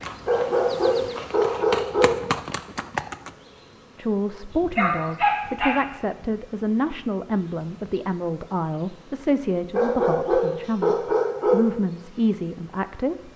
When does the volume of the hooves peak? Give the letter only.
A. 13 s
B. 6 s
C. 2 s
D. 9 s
C.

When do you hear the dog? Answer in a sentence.
You can hear the dog from 0.2 to 2.1 s, from 4.5 to 5.8 s and from 9.7 to 11.6 s.